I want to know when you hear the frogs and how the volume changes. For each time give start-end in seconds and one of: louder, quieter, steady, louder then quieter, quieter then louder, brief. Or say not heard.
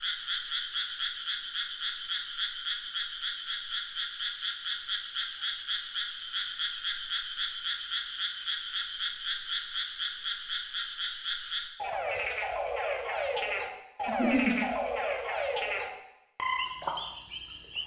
0.0-17.8 steady.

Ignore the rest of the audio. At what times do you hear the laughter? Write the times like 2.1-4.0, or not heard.
14.1-14.6.